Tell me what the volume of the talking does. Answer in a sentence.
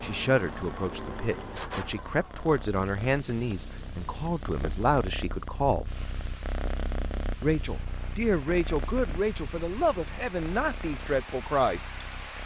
The loudness of the talking stays about the same.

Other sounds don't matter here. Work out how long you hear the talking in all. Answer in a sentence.
The talking can be heard for 10 seconds in total.